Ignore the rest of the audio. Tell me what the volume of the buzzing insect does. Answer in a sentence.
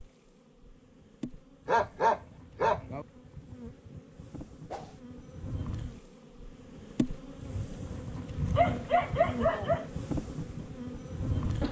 The loudness of the buzzing insect goes up.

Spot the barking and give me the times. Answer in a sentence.
You can hear the barking from 1.6 to 3.0 s and from 8.1 to 9.8 s.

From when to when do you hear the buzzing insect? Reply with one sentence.
You can hear the buzzing insect from 0.0 to 11.6 s.